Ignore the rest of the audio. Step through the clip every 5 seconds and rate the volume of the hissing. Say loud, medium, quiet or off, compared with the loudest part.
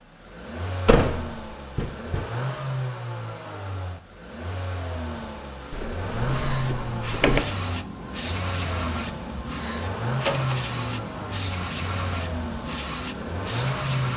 off, loud, loud.